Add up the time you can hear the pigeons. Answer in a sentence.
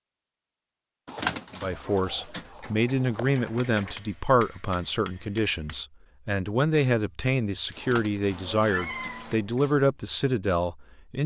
You can hear the pigeons for 5 seconds altogether.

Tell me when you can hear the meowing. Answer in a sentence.
You can hear the meowing from 8.3 to 9.4 s.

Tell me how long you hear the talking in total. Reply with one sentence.
You can hear the talking for 10 seconds altogether.